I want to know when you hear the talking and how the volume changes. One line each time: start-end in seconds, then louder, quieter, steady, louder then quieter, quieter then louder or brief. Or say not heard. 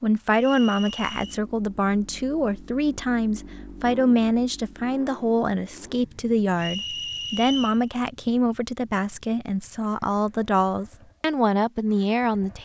0.0-12.6 steady.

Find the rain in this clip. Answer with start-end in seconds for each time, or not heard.
not heard.